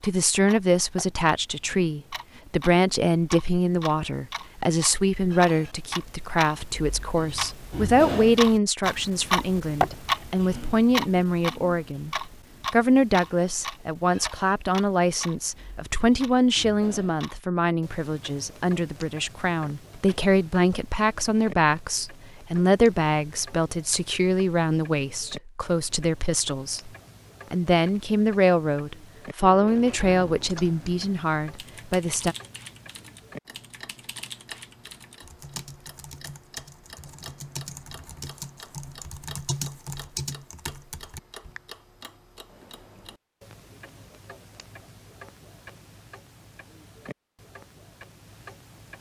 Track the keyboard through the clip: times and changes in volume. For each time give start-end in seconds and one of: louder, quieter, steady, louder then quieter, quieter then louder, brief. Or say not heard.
30.4-41.6 louder.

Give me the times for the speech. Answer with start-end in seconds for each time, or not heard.
0.0-26.9, 27.5-32.4.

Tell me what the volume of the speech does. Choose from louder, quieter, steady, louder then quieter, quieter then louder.
steady.